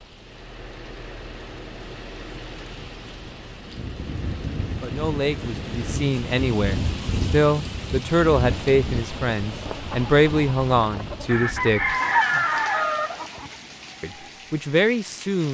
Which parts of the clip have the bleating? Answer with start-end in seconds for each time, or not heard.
not heard.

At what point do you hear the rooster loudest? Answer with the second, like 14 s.
12 s.